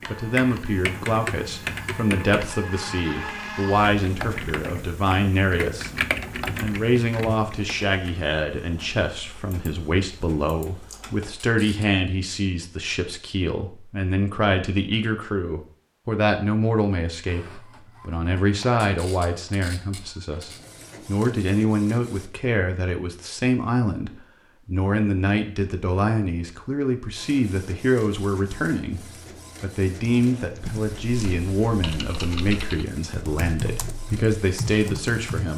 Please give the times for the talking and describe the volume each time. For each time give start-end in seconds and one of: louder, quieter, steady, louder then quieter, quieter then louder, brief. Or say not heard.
0.1-35.5 steady.